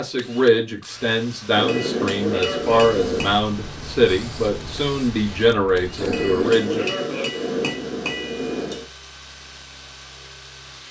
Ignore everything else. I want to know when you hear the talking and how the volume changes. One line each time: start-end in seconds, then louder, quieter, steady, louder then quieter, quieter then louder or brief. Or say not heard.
0.0-6.8 steady.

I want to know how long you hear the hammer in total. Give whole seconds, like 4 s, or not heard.
5 s.